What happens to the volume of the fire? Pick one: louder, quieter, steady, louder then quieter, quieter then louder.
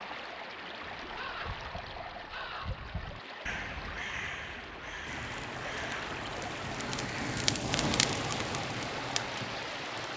louder then quieter.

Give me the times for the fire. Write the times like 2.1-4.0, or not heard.
5.0-10.1.